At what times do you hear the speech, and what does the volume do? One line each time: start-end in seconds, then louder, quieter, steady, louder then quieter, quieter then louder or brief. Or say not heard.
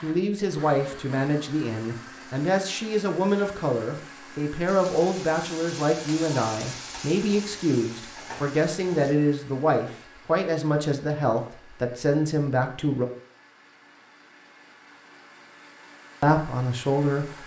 0.0-13.1 steady
16.2-17.4 brief.